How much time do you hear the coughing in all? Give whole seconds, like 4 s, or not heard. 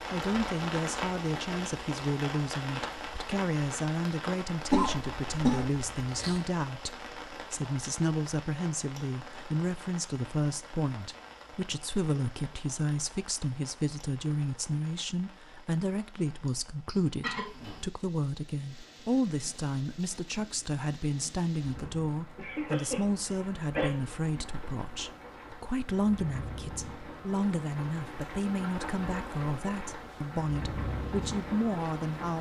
4 s.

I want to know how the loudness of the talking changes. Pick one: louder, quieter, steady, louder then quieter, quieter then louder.
steady.